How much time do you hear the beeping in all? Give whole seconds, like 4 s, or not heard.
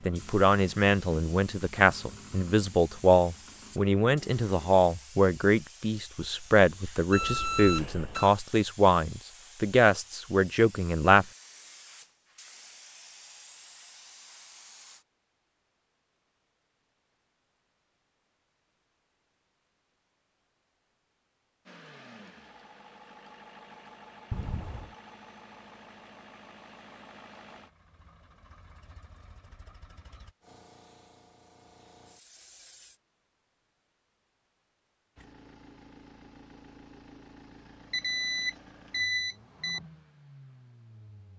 4 s.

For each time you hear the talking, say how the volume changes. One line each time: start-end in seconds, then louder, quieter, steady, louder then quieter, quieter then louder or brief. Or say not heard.
0.1-11.2 steady.